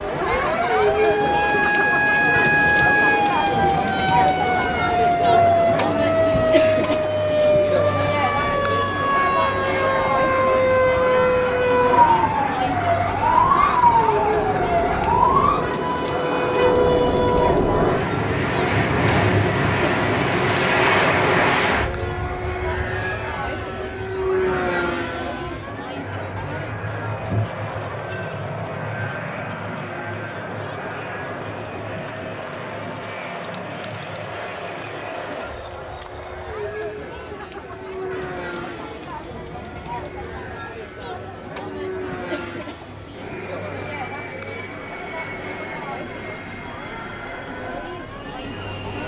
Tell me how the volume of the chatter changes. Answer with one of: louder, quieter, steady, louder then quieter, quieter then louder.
quieter.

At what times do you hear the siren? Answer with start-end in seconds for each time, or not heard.
0.0-18.0.